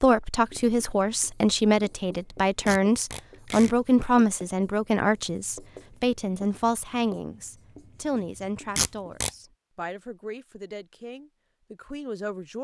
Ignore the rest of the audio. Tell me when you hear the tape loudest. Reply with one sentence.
The loudest moment of the tape is at 9 seconds.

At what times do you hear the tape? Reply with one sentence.
The tape can be heard from 2.6 to 3.7 s and from 8.8 to 9.3 s.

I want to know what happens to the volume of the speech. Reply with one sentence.
The loudness of the speech goes down.